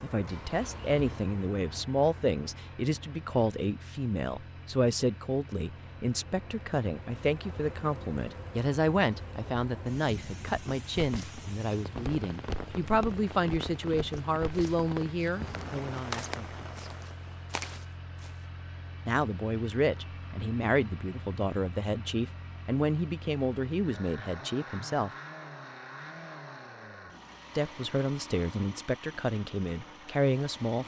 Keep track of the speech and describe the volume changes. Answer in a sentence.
The volume of the speech stays about the same.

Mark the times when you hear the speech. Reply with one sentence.
You can hear the speech from 0.0 to 16.8 s, from 19.1 to 25.1 s and from 27.6 to 30.8 s.